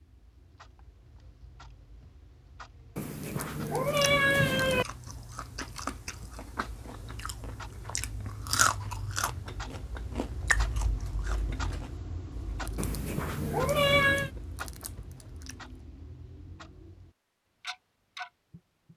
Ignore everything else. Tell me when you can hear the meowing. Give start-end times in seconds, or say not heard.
3.0-4.8, 12.8-14.3.